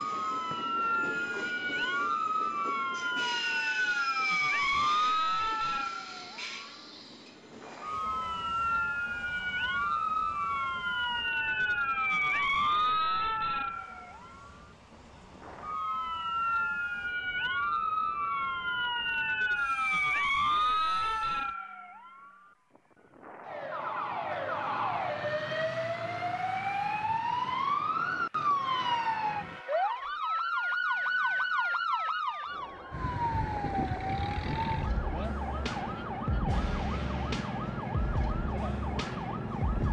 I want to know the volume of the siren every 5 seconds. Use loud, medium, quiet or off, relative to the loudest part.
loud, loud, loud, loud, loud, loud, loud, medium.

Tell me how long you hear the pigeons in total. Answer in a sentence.
The pigeons can't be heard in this clip.